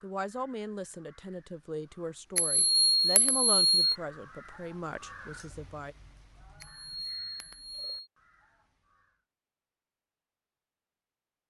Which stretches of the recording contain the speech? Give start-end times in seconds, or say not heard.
0.0-6.0.